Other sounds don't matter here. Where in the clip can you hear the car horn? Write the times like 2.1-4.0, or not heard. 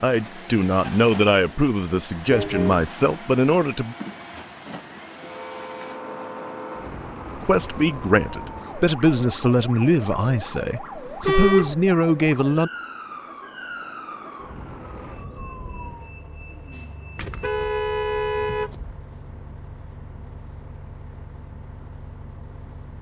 2.3-2.9, 11.2-11.8, 17.1-18.9.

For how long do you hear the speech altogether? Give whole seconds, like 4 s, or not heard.
9 s.